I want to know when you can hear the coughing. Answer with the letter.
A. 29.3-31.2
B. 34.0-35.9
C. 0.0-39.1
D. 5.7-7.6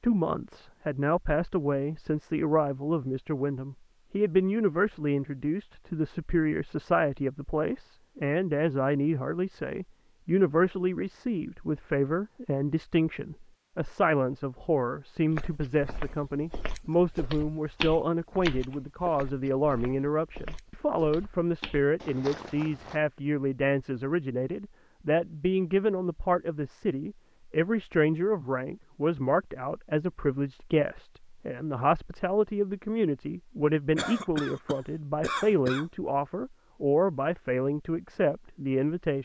B.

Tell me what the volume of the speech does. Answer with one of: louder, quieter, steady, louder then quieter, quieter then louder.
steady.